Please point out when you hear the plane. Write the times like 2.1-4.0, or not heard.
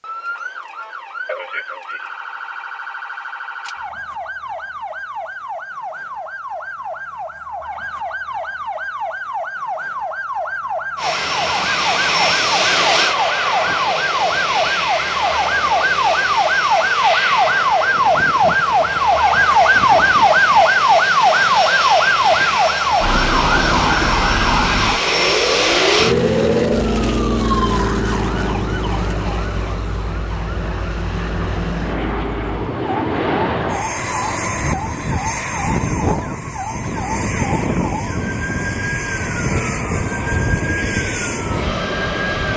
10.9-42.5.